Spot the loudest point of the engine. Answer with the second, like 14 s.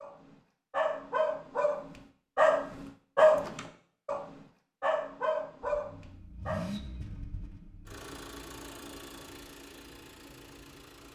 7 s.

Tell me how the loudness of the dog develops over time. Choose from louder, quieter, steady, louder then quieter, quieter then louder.
louder then quieter.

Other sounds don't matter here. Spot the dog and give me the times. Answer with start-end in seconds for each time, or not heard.
0.0-6.7.